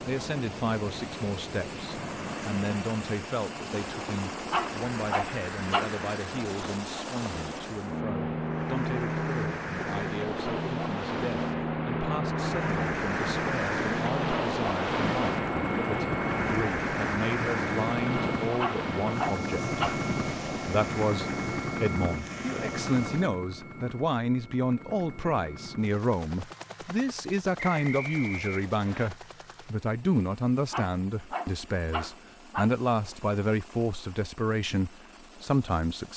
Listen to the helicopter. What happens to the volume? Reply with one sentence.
The volume of the helicopter goes up, then down.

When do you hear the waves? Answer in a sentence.
The waves can be heard from 0.0 to 23.3 s.